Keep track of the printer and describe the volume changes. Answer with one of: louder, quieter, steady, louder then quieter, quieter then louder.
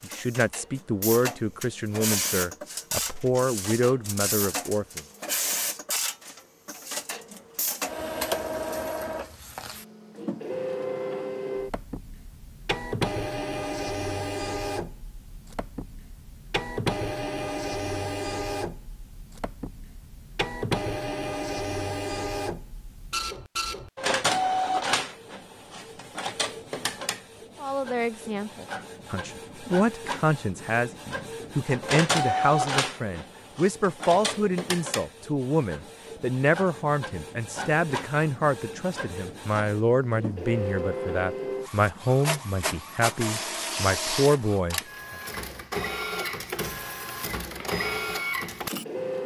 steady.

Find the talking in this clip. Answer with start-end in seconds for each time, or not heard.
0.0-5.0, 27.6-45.1.